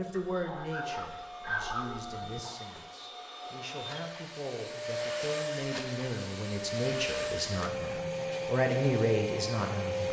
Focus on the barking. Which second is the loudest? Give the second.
2 s.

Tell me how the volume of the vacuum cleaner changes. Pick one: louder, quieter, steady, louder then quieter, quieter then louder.
louder.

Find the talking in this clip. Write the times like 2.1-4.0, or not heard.
0.0-10.0.